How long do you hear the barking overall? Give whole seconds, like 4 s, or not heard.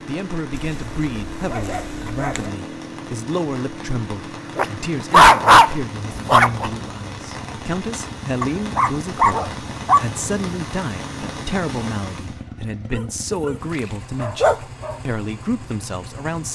7 s.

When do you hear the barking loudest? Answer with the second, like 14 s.
5 s.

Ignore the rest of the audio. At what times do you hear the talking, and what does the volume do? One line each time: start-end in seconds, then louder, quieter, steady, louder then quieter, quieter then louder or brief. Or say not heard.
0.1-16.5 steady.